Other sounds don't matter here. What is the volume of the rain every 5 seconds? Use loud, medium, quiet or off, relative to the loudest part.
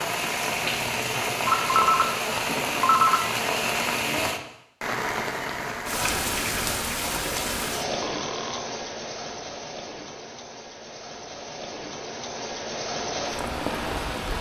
loud, loud, medium.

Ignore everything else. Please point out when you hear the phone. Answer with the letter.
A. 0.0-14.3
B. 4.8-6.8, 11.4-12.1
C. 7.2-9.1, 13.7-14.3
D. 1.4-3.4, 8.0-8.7
D.